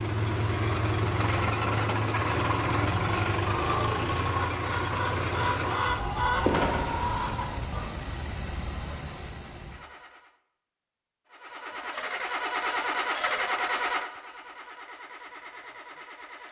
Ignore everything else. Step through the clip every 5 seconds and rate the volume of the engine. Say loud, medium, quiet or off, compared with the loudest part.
loud, medium, loud, quiet.